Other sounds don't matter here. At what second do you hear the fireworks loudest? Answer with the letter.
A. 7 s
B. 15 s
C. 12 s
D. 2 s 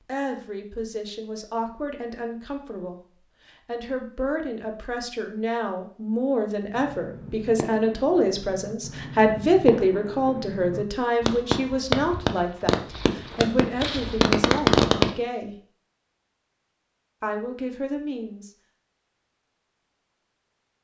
B.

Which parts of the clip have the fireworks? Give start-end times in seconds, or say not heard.
6.8-15.1.